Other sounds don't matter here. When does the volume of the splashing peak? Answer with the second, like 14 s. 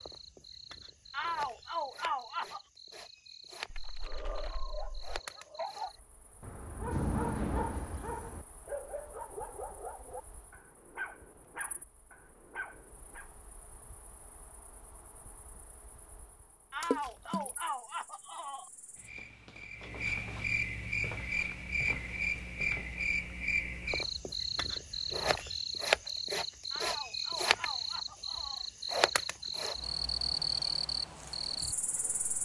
17 s.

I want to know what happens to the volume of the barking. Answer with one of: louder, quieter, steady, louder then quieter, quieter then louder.
louder then quieter.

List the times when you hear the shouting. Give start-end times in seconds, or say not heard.
1.1-2.7, 16.7-18.7, 26.7-28.7.